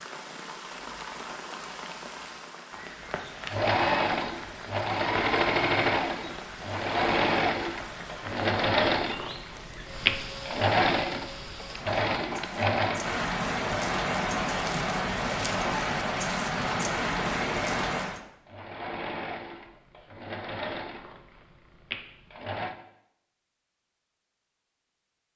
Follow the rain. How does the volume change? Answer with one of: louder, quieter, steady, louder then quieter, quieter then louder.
louder.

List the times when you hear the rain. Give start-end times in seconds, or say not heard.
0.0-18.2.